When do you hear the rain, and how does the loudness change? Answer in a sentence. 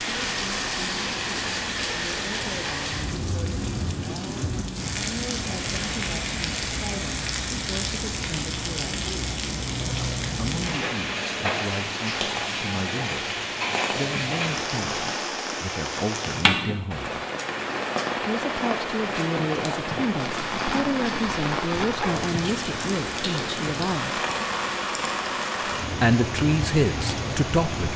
The rain can be heard from 0.0 to 27.9 s, at a steady volume.